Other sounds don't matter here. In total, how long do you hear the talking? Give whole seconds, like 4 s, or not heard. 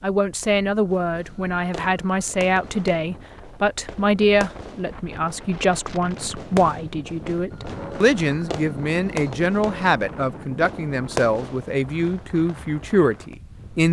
14 s.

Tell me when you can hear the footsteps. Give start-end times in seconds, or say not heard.
not heard.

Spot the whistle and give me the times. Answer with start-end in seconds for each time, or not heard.
not heard.